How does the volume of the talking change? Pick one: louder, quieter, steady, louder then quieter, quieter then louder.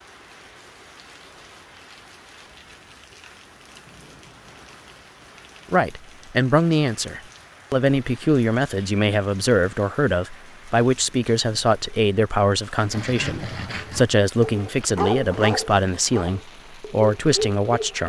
steady.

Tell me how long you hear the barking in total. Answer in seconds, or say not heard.
5 s.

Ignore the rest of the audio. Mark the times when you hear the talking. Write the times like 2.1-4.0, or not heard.
5.7-18.0.